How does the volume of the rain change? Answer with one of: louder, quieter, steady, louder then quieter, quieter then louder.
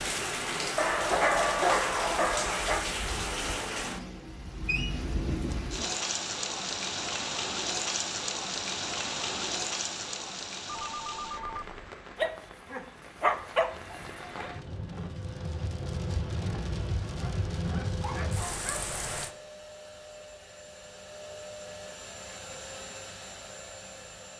quieter then louder.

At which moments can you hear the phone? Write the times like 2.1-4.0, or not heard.
10.7-11.8.